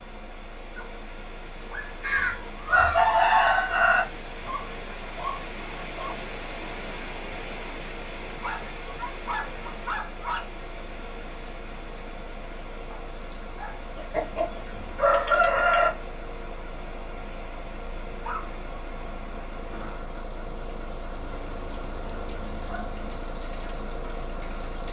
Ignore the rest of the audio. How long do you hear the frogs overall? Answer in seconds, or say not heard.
not heard.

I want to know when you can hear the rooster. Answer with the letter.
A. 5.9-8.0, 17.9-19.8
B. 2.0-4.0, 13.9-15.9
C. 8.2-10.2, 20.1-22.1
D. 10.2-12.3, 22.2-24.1
B.